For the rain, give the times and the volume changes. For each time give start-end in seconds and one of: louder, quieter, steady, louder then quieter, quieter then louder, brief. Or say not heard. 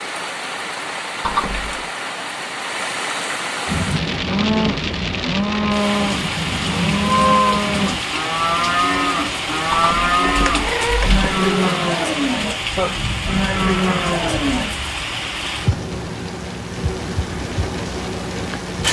0.0-18.8 steady.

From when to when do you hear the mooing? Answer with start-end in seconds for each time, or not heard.
3.6-14.8.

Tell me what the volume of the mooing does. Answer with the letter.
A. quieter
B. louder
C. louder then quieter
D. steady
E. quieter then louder
D.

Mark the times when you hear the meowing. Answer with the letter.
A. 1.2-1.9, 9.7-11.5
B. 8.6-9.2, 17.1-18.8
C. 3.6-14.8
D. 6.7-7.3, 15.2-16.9
A.